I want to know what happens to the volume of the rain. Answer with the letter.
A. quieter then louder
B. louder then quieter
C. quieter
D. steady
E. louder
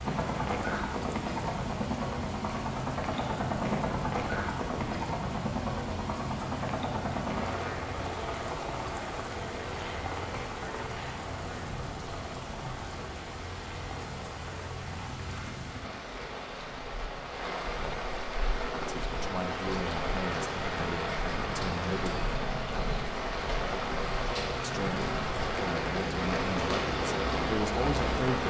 E.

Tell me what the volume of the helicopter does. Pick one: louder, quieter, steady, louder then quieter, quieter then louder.
quieter then louder.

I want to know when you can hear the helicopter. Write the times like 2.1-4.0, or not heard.
0.0-28.4.